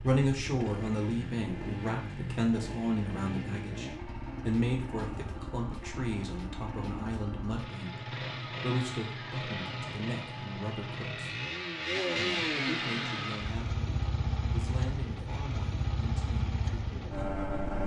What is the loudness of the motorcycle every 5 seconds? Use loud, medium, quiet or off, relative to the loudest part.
medium, medium, loud, loud.